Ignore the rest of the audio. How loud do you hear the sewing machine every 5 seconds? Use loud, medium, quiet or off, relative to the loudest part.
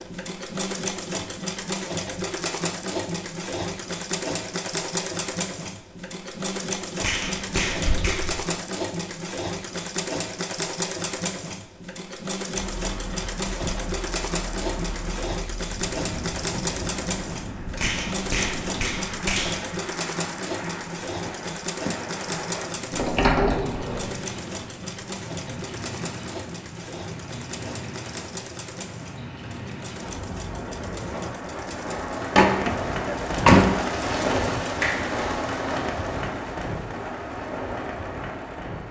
loud, loud, loud, loud, loud, medium, medium, quiet.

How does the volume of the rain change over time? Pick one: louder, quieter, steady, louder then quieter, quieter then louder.
louder.